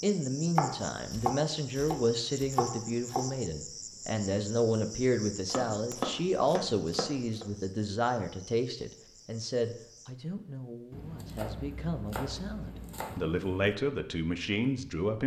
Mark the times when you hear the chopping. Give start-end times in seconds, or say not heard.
0.6-3.2, 5.5-7.5, 10.9-13.7.